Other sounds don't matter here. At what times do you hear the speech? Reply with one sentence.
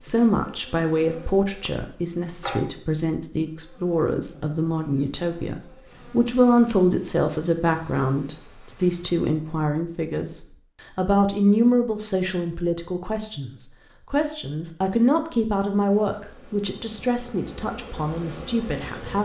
The speech can be heard from 0.0 to 19.2 s.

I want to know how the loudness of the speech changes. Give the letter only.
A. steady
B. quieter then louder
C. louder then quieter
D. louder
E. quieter
A.